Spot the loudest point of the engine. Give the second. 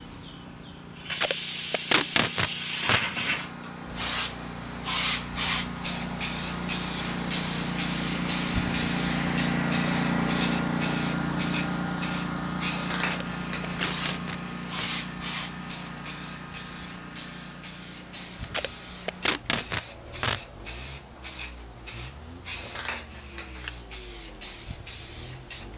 10 s.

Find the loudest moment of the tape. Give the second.
2 s.